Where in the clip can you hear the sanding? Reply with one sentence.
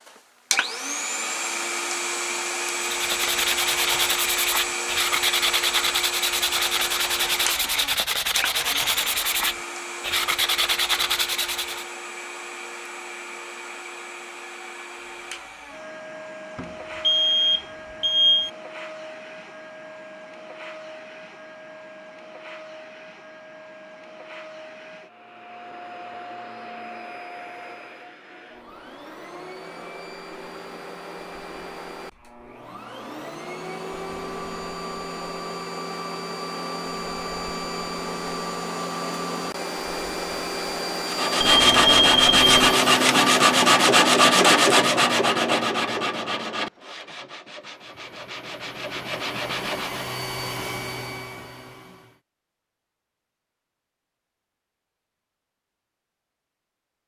The sanding can be heard from 2.8 to 11.8 s and from 41.0 to 50.1 s.